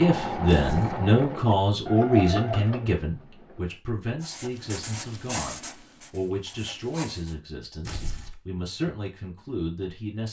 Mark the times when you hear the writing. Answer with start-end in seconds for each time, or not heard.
4.2-7.3.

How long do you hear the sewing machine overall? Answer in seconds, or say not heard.
4 s.